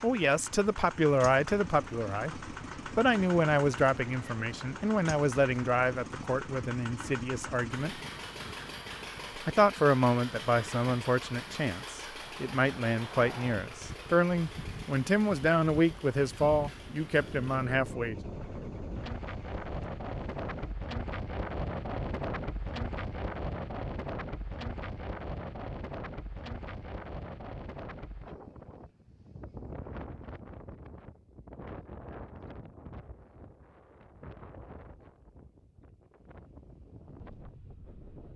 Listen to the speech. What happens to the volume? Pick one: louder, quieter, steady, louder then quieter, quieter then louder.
steady.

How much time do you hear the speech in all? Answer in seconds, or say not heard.
17 s.